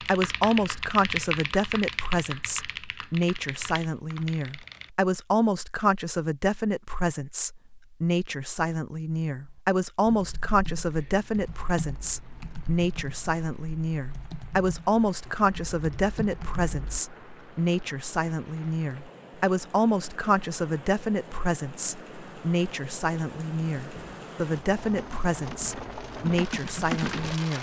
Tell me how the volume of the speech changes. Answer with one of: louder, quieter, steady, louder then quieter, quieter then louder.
steady.